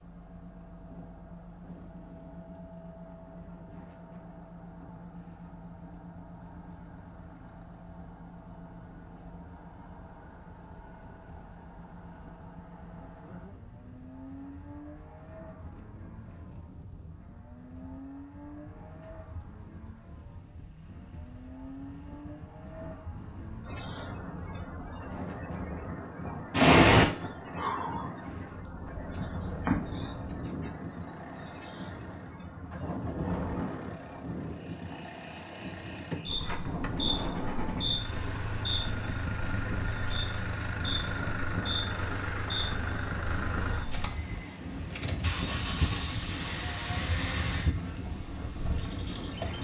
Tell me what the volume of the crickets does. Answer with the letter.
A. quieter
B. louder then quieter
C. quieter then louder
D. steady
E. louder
A.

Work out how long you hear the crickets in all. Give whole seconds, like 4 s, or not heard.
26 s.